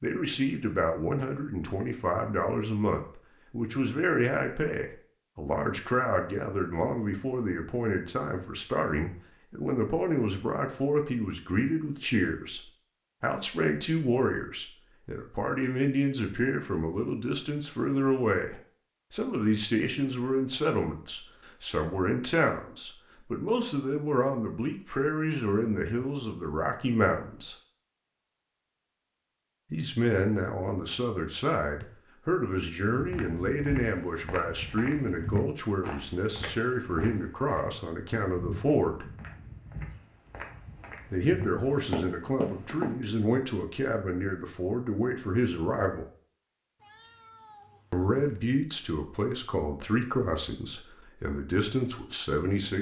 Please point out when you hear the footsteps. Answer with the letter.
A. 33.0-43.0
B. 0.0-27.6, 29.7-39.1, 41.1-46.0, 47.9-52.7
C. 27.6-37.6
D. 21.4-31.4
A.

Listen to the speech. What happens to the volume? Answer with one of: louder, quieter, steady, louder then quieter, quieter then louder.
steady.